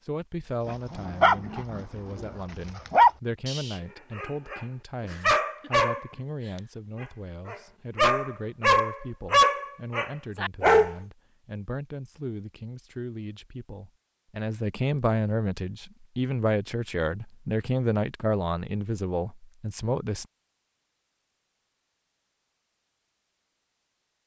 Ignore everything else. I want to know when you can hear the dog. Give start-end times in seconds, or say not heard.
0.7-10.9.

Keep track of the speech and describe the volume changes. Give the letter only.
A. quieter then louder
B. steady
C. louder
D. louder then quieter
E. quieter
C.